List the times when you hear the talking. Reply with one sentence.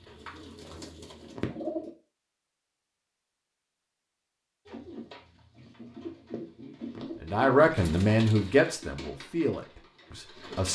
The talking can be heard from 7.2 to 10.7 s.